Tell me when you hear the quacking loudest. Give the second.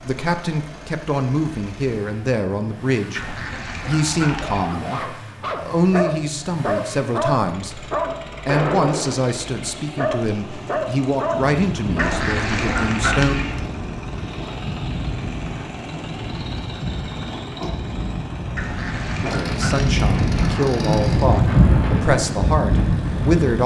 13 s.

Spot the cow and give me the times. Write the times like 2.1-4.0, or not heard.
not heard.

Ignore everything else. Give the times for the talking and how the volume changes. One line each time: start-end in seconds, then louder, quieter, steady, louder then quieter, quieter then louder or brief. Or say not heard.
0.0-13.3 steady
19.2-23.6 steady.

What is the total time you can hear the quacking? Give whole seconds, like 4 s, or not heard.
5 s.